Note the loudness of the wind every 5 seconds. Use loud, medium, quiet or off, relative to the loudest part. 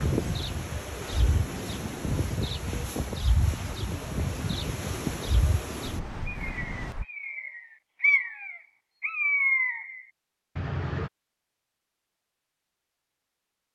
loud, loud, off.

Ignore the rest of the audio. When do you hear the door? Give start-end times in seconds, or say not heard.
not heard.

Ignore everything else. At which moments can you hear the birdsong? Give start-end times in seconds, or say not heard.
0.1-11.1.